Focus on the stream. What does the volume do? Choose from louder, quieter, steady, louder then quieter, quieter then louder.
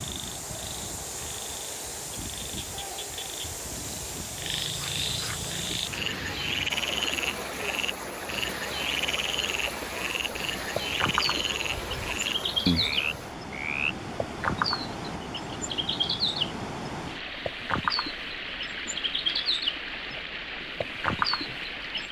steady.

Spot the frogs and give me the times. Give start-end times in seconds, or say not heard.
0.0-13.9.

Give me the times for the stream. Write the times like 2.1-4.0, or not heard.
0.0-22.0.